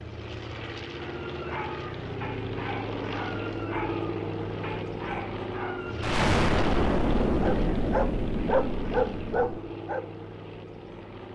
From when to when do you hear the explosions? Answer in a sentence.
You can hear the explosions from 6.0 to 9.6 s.